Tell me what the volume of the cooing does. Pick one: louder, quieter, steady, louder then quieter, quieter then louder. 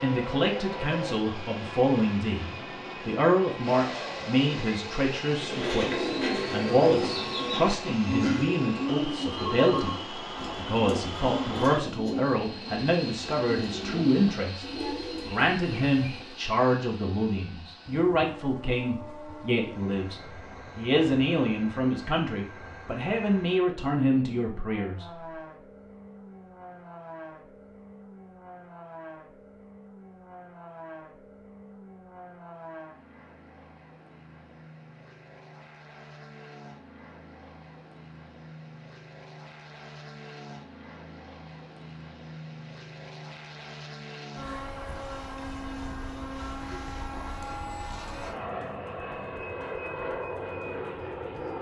quieter.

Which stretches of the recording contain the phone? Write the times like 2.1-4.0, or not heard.
9.3-10.1.